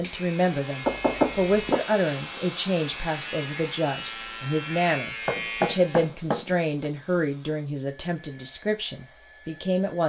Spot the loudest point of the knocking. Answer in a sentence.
The volume of the knocking peaks at 1 second.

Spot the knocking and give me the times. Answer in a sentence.
The knocking can be heard from 0.8 to 1.8 s and from 5.2 to 6.8 s.